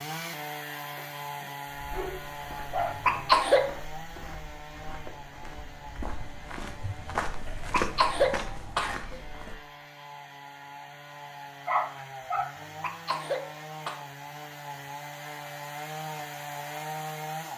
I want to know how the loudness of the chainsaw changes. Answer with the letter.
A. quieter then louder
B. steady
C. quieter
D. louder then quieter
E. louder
A.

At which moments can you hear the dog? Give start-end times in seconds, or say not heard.
0.9-3.0, 11.7-12.5.